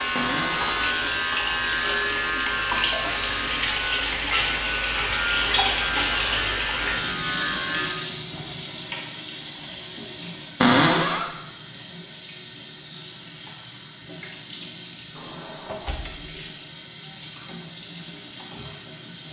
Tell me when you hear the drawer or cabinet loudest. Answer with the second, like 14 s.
11 s.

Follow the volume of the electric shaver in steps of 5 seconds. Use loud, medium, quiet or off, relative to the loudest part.
loud, loud, off, off.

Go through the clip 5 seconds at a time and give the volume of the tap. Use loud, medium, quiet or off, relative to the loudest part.
loud, loud, medium, medium.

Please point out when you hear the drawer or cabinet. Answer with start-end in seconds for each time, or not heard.
0.1-0.8, 10.6-11.2, 15.2-16.3.